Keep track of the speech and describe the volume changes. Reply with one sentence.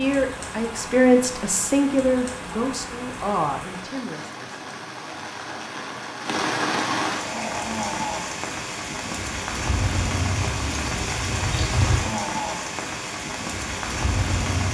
The volume of the speech goes down.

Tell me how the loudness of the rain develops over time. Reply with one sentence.
The loudness of the rain goes up.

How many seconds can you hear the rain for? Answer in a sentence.
You can hear the rain for 15 seconds altogether.